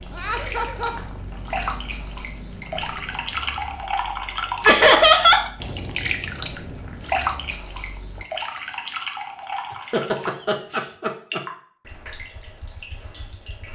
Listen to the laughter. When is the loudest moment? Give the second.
5 s.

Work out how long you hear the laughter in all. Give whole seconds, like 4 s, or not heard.
3 s.